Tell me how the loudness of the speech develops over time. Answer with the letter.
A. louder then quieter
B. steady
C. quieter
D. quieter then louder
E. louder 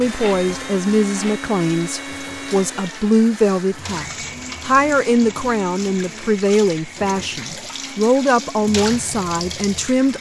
B.